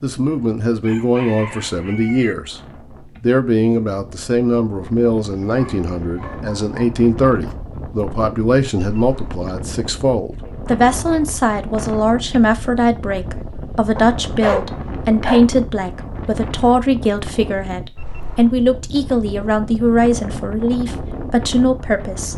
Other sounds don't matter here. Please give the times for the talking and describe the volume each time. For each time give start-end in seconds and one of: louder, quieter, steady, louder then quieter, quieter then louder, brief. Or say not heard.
0.0-2.6 brief
3.2-22.3 steady.